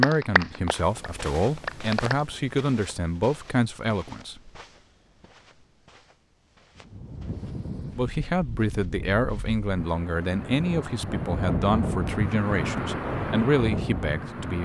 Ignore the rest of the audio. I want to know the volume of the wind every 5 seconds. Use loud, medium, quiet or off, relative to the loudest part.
off, medium, loud.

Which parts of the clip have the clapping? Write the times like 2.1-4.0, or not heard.
0.0-2.1.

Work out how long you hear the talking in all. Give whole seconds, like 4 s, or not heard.
11 s.